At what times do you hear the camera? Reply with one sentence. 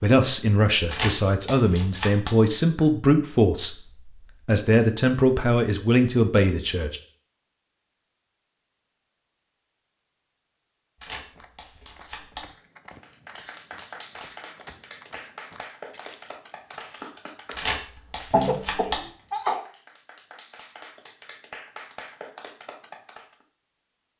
You can hear the camera from 0.9 to 2.3 s, from 11.0 to 12.4 s and from 17.6 to 19.0 s.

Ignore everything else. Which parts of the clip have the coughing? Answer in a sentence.
You can hear the coughing from 18.3 to 19.6 s.